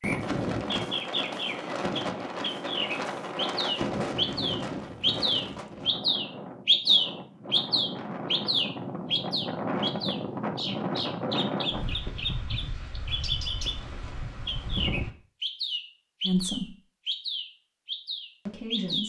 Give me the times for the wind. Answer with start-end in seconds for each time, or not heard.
0.0-15.1.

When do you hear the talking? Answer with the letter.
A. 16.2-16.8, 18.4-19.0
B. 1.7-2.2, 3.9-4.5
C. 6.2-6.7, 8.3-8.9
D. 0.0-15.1
A.